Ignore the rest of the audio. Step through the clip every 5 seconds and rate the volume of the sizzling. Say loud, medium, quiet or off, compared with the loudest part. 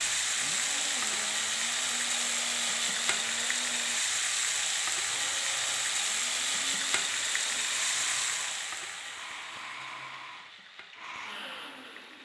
loud, loud, quiet.